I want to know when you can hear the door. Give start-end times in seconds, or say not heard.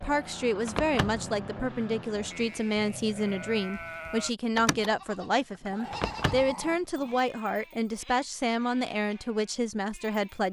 0.7-1.2, 5.9-6.5.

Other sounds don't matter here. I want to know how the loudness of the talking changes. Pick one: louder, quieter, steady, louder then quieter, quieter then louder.
steady.